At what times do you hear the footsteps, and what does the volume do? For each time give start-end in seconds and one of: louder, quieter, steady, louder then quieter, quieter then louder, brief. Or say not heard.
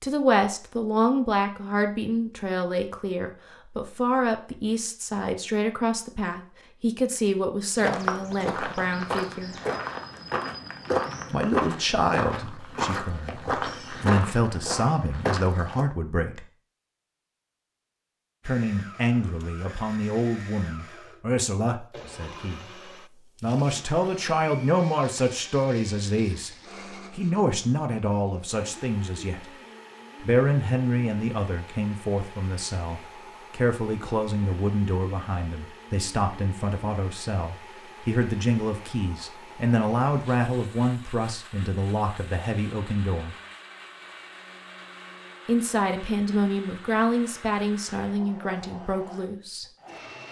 7.8-15.8 steady.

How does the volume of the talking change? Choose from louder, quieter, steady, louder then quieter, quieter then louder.
steady.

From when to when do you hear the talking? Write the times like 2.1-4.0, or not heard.
0.0-9.6, 11.3-16.4, 18.4-22.7, 23.4-29.4, 30.2-43.4, 45.5-49.6.